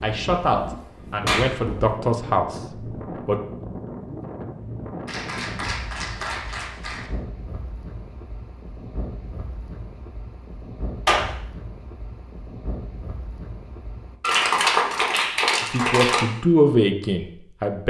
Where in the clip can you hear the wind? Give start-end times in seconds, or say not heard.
0.0-14.2.